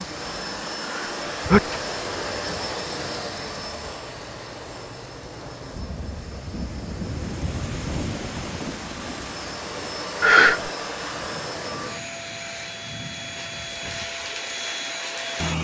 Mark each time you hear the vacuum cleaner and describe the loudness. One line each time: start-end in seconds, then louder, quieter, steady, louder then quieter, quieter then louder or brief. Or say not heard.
0.0-15.5 quieter then louder.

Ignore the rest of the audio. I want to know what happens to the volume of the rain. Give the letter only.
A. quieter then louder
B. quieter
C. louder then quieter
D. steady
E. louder
C.